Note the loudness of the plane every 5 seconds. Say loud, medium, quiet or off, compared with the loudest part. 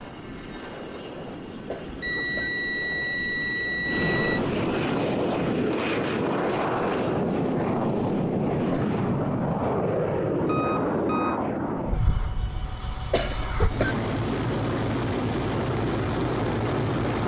medium, loud, loud, loud.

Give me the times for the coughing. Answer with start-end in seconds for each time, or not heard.
1.6-2.5, 8.7-9.2, 13.1-13.9.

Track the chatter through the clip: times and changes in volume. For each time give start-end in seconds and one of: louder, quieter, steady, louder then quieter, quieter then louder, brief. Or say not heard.
not heard.